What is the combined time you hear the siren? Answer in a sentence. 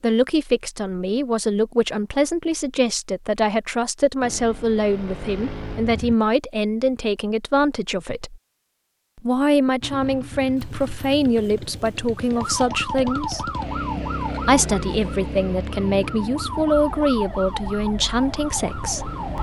You can hear the siren for 7 seconds altogether.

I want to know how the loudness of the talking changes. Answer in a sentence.
The volume of the talking stays about the same.